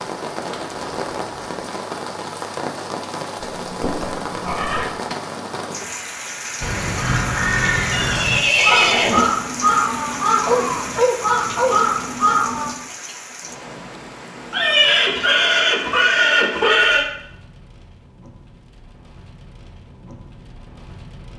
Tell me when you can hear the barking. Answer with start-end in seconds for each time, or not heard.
10.4-11.8.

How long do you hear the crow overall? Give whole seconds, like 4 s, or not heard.
6 s.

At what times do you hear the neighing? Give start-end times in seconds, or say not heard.
3.4-4.9, 7.9-9.2, 14.5-17.1.